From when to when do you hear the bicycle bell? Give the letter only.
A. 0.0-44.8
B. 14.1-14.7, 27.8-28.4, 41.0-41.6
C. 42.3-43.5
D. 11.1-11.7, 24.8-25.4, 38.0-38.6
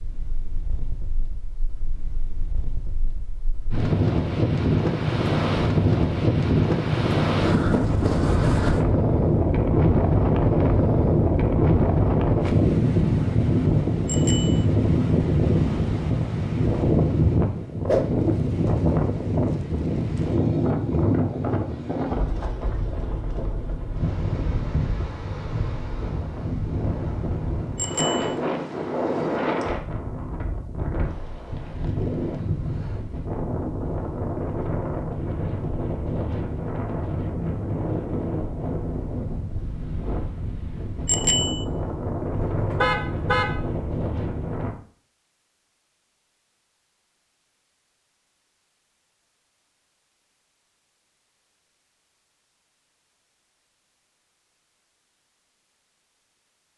B.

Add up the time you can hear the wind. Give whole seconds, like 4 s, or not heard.
45 s.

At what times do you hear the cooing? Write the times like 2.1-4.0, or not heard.
not heard.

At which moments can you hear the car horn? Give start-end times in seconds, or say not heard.
42.3-43.5.